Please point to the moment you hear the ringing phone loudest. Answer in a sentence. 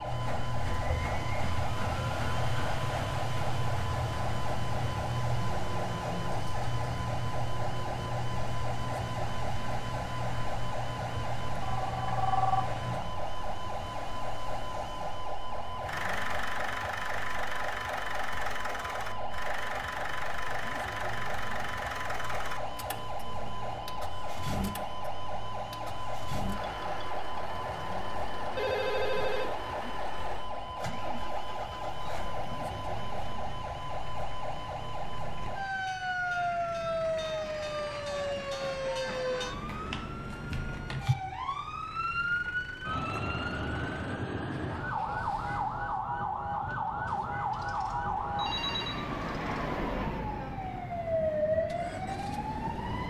The loudest moment of the ringing phone is at 12 seconds.